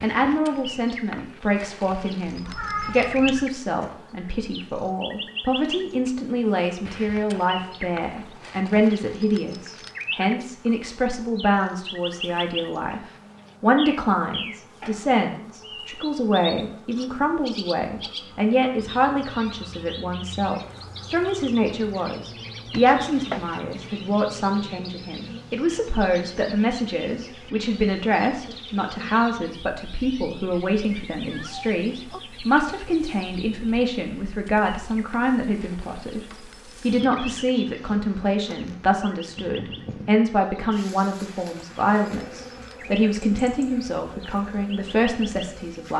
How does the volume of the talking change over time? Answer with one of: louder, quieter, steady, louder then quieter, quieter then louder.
steady.